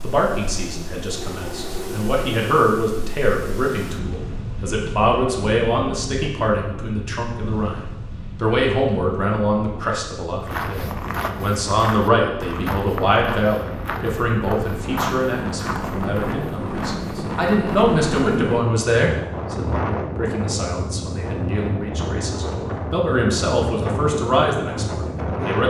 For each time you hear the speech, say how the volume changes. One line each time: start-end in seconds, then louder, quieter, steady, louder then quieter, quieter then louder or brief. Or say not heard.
0.0-25.6 steady.